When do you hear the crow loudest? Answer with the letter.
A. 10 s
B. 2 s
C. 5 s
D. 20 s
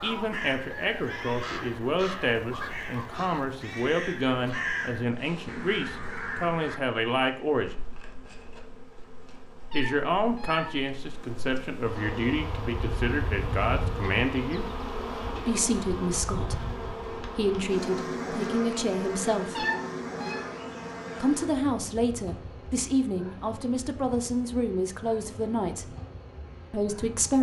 C.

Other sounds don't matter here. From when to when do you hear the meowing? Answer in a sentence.
You can hear the meowing from 9.7 to 10.8 s and from 19.6 to 20.4 s.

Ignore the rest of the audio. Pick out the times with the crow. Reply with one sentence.
You can hear the crow from 0.0 to 6.8 s.